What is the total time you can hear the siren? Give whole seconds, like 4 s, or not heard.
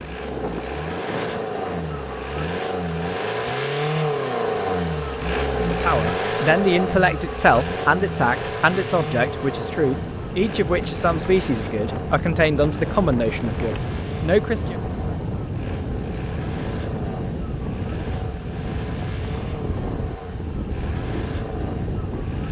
not heard.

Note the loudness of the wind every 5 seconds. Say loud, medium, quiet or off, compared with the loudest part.
medium, medium, loud, loud, loud.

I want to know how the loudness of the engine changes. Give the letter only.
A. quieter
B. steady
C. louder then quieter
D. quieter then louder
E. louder
A.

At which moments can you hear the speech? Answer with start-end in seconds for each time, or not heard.
5.5-14.8.